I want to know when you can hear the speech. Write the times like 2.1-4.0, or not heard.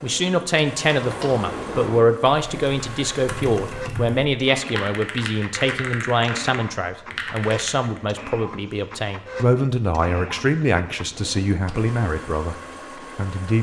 0.0-13.5.